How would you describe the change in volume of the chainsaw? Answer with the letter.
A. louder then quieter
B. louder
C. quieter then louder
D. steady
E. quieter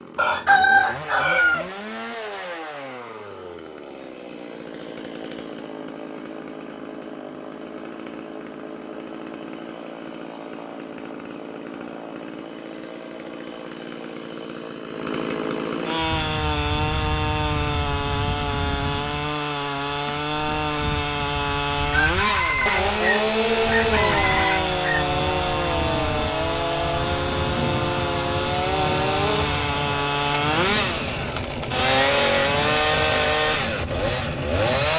B.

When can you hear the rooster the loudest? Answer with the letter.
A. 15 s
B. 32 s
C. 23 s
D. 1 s
D.